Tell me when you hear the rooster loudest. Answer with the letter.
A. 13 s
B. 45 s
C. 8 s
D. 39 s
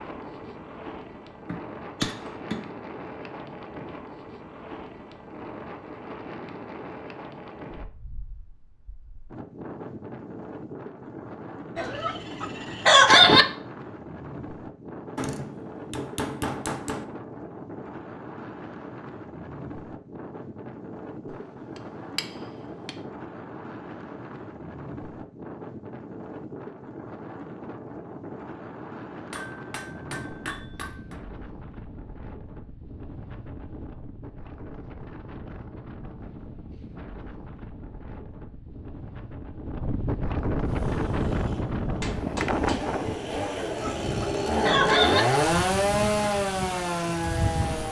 A.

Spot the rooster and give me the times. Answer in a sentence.
The rooster can be heard from 11.8 to 13.4 s and from 43.5 to 45.2 s.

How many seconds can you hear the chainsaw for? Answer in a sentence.
The chainsaw can be heard for 7 seconds in total.